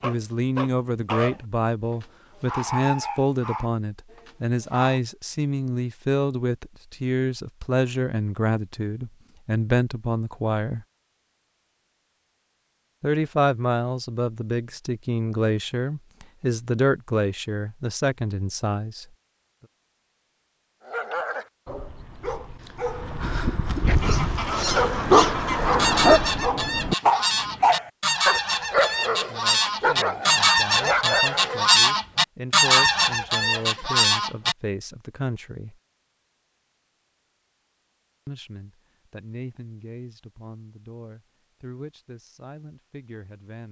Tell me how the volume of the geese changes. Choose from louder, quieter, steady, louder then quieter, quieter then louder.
louder.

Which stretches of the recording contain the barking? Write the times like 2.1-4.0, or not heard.
0.0-5.0, 20.9-31.6.